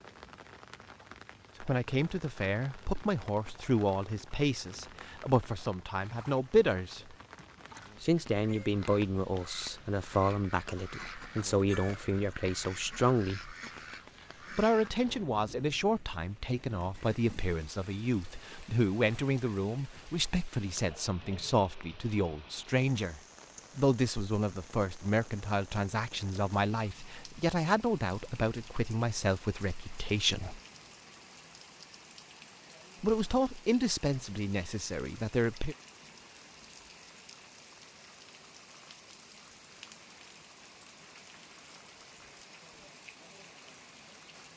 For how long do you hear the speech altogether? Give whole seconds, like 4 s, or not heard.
30 s.